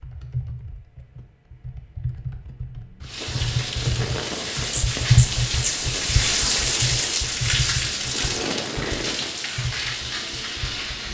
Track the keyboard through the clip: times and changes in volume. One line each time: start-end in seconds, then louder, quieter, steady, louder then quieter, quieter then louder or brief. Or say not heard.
0.0-11.0 louder then quieter.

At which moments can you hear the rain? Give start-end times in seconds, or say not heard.
3.0-11.0.